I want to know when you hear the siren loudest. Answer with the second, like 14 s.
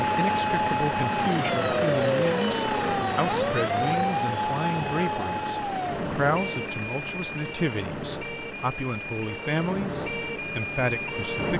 2 s.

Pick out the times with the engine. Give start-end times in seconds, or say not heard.
0.0-11.5.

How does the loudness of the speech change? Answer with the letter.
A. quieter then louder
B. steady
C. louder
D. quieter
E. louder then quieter
B.